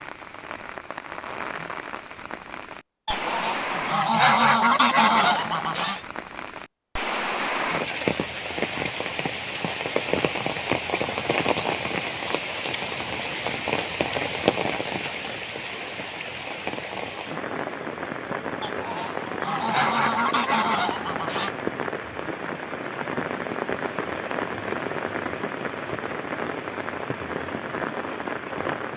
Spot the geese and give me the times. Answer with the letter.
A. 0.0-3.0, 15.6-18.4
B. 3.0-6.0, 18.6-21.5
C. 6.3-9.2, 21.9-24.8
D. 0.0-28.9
B.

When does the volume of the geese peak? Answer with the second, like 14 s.
4 s.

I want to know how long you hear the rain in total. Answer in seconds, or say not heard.
29 s.